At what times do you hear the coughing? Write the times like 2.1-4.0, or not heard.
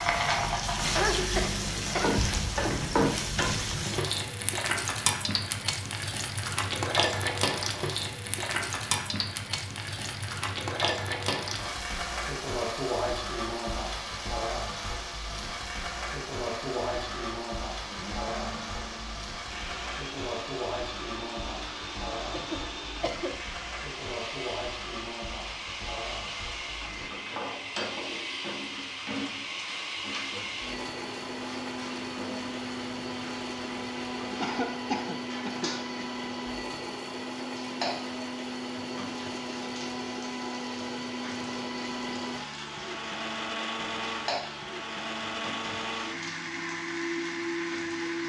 0.8-2.1, 22.0-23.4, 34.4-36.0.